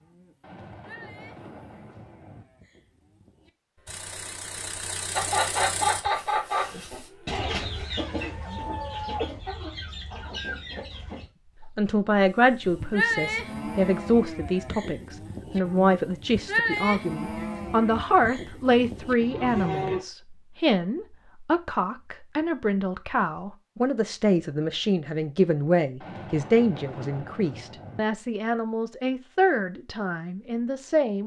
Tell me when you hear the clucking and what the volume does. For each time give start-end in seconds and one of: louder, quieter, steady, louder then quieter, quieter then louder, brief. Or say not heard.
5.2-12.9 quieter.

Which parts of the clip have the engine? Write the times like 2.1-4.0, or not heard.
3.9-6.0.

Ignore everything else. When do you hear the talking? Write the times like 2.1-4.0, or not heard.
11.8-31.2.